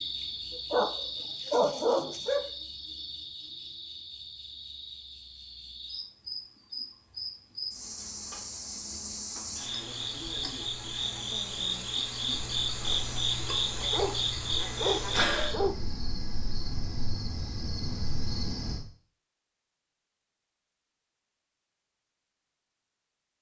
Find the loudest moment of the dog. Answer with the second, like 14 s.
2 s.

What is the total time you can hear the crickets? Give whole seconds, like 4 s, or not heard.
19 s.